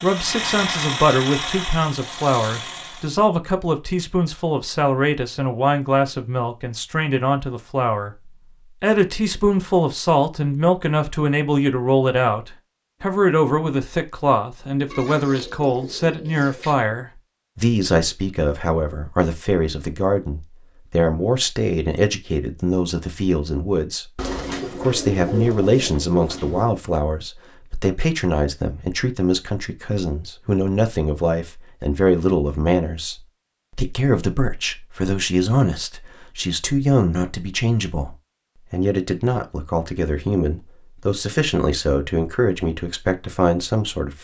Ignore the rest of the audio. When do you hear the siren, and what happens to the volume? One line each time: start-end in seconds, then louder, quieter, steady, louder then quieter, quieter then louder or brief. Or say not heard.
not heard.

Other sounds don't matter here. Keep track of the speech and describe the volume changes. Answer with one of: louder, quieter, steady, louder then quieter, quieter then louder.
steady.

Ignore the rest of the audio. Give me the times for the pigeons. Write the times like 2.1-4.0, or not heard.
14.9-16.8, 24.1-26.8.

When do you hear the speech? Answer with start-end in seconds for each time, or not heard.
0.0-24.1, 24.8-44.1.